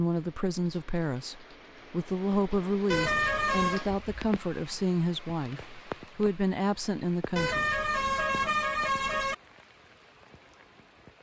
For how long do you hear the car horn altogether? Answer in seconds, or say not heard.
3 s.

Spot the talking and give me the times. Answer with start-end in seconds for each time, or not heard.
0.0-7.7.